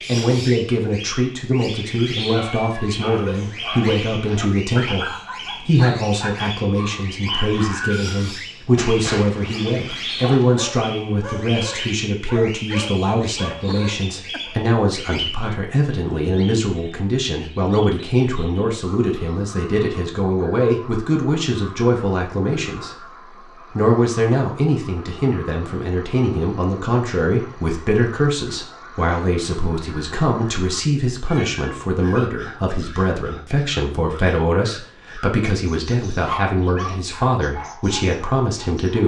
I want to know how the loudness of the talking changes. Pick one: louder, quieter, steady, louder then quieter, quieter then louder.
steady.